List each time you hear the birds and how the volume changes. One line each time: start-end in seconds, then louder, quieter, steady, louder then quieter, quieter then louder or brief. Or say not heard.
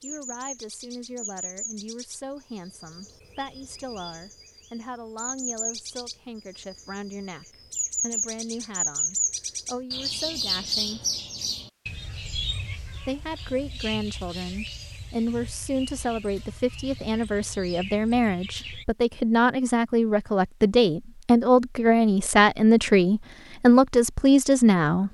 0.0-18.9 louder then quieter.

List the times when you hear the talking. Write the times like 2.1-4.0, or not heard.
0.0-11.0, 13.1-25.0.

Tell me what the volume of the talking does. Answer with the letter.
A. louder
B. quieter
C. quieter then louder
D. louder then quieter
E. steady
A.